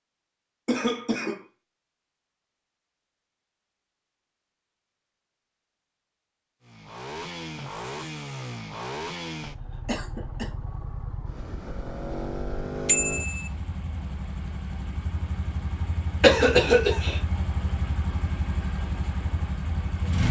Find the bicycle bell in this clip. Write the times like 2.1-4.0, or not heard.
12.8-13.5.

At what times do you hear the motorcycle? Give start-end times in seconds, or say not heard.
6.7-20.2.